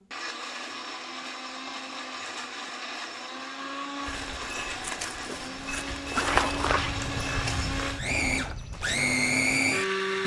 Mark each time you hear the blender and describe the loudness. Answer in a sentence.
You can hear the blender from 0.0 to 10.2 s, getting louder.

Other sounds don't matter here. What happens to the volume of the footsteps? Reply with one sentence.
The loudness of the footsteps goes up, then down.